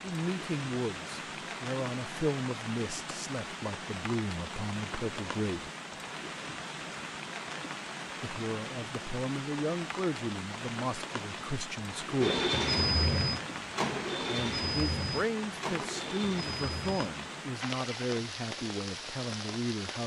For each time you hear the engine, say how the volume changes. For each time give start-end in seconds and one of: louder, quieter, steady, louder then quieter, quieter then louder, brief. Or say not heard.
12.2-18.1 quieter.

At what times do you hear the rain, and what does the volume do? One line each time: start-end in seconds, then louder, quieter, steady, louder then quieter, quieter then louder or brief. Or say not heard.
0.0-20.0 steady.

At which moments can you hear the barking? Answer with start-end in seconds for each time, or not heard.
not heard.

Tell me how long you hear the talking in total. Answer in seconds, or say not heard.
16 s.